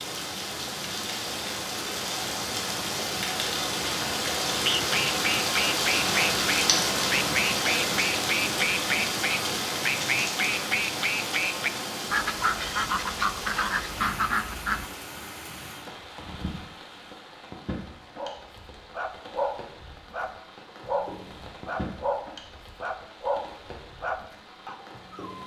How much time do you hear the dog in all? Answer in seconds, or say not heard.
7 s.